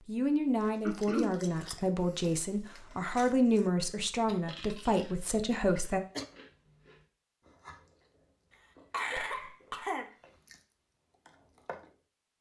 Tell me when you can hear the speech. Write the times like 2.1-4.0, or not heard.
0.1-6.0.